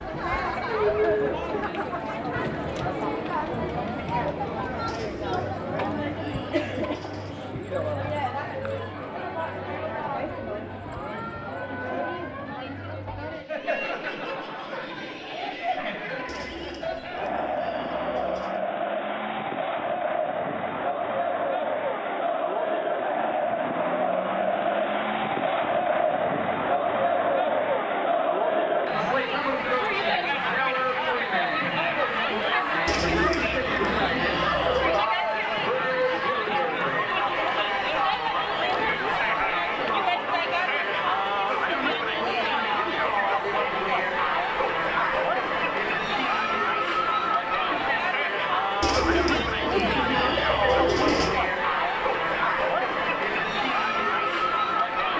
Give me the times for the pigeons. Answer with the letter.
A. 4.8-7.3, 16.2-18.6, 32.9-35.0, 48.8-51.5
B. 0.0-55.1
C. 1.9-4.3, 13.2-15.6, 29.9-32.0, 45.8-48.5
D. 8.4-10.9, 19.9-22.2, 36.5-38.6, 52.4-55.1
A.